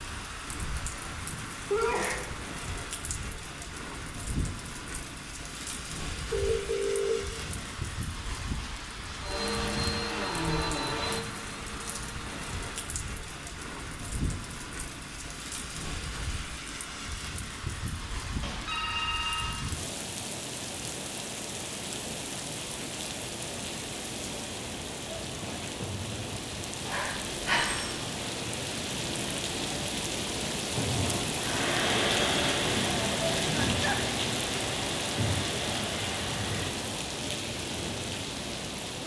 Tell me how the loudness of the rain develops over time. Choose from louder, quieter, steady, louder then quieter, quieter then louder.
louder.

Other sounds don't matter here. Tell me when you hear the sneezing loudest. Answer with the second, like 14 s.
2 s.